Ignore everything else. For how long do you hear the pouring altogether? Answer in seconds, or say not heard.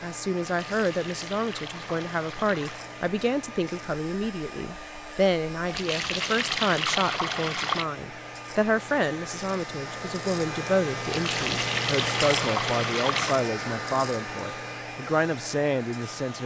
7 s.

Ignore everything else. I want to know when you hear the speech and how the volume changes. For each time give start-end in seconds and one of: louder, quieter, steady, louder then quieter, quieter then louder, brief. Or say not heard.
0.0-16.4 steady.